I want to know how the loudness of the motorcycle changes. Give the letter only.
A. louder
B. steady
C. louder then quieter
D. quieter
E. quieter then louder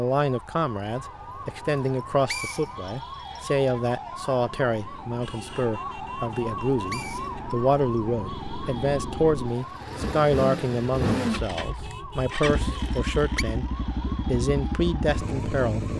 A.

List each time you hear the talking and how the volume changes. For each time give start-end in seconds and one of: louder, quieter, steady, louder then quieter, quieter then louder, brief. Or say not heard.
0.0-15.9 steady.